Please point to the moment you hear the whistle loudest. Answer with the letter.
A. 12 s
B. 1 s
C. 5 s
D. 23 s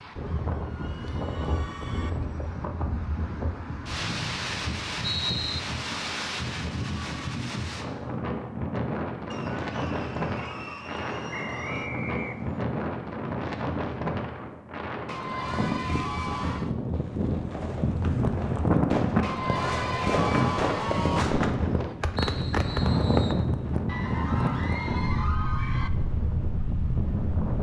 C.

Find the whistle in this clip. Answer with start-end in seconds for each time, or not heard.
4.0-5.6, 11.3-12.6, 22.1-23.4.